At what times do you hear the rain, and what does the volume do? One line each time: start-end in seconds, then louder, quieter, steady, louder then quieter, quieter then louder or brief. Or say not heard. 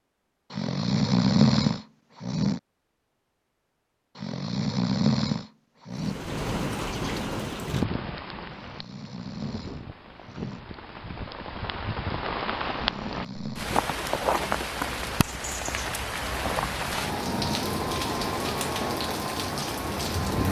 6.0-20.4 quieter then louder.